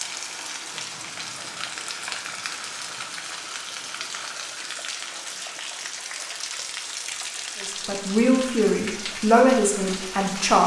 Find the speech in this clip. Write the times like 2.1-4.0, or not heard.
7.6-10.6.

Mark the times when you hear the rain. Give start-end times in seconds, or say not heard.
0.0-10.6.